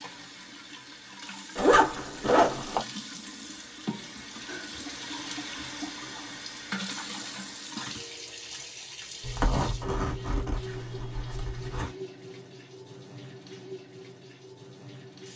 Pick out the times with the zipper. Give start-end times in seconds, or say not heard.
1.6-2.8, 9.2-11.9.